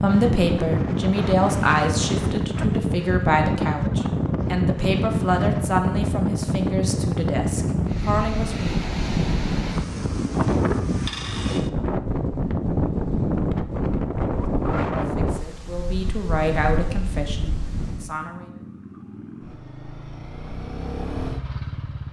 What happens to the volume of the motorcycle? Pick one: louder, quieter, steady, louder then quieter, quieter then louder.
louder.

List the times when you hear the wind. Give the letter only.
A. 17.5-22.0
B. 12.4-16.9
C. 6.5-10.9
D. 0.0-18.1
D.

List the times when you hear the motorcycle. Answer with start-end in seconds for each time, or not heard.
17.5-22.0.